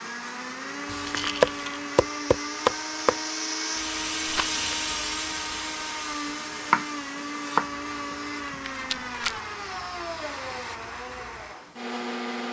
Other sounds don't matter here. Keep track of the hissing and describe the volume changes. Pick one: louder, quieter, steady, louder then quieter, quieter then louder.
louder then quieter.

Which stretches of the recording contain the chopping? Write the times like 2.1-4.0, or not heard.
0.8-3.1, 6.7-7.7, 8.5-9.0.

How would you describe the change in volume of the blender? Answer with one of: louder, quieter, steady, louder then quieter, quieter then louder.
steady.